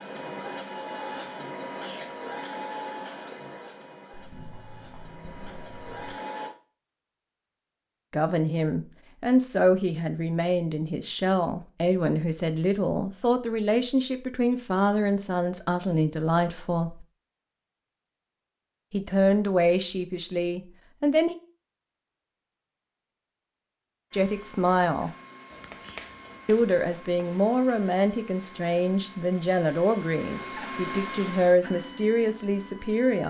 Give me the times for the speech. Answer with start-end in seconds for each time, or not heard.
8.1-17.1, 18.9-21.4, 24.1-25.1, 26.4-33.2.